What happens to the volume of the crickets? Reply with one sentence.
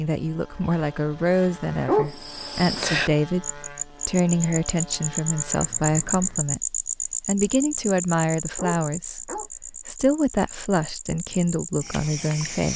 The loudness of the crickets goes down.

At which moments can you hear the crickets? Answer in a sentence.
The crickets can be heard from 2.0 to 12.7 s.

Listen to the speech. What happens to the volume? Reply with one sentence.
The loudness of the speech stays about the same.